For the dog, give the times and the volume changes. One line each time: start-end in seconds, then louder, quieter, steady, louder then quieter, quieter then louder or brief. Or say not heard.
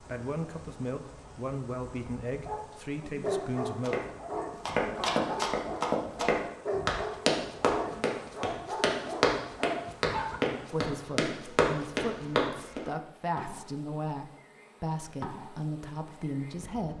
2.5-10.4 steady.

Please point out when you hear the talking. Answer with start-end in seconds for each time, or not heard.
0.0-4.0, 10.7-16.9.